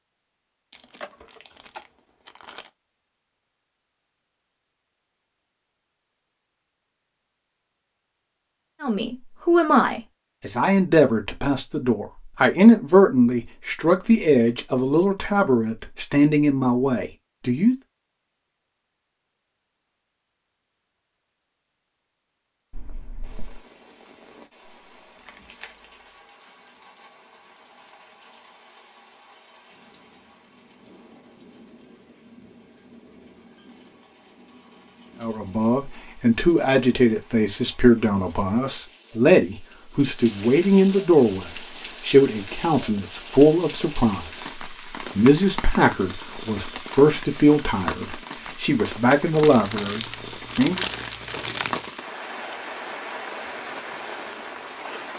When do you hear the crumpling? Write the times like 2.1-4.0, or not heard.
0.7-2.7, 25.1-25.9, 49.3-51.9.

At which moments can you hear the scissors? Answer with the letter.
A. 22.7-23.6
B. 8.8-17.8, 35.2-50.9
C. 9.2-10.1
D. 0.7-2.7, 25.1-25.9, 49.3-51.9
A.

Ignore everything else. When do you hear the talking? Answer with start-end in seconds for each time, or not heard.
8.8-17.8, 35.2-50.9.